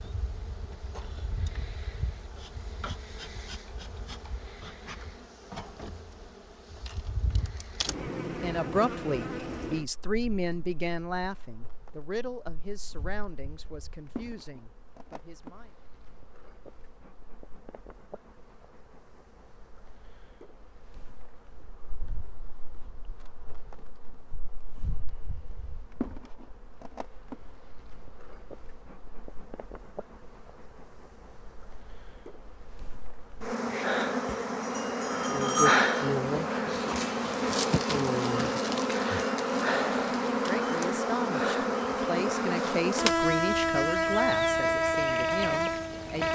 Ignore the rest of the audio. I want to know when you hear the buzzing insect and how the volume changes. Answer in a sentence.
You can hear the buzzing insect from 0.0 to 46.2 s, getting quieter then louder.